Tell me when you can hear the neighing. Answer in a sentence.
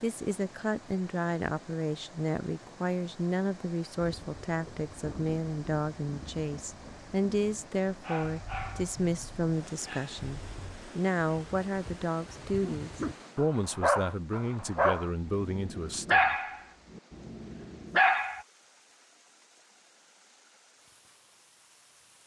You can't hear the neighing here.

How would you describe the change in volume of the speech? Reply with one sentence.
The loudness of the speech stays about the same.